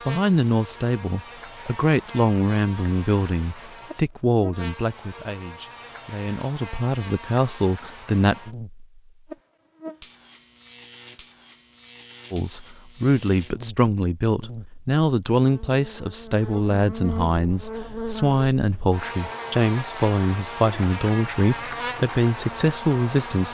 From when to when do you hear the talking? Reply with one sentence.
You can hear the talking from 0.1 to 8.3 s and from 12.3 to 23.5 s.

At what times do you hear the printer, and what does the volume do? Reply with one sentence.
The printer can't be heard in this clip.